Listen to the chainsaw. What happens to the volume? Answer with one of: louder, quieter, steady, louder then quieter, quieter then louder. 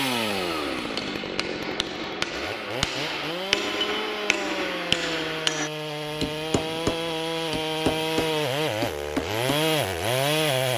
louder.